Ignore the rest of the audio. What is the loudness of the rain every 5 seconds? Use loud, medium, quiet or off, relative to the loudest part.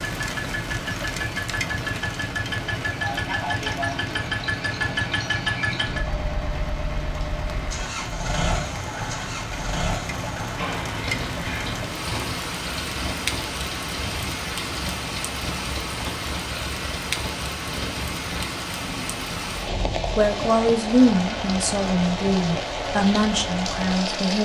loud, medium, loud, loud, loud.